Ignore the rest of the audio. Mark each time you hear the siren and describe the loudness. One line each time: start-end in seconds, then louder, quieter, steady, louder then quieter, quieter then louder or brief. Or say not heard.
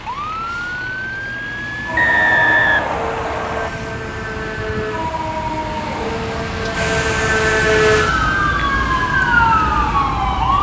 0.0-10.5 louder.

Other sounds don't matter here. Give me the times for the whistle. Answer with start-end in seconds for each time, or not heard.
1.9-3.7.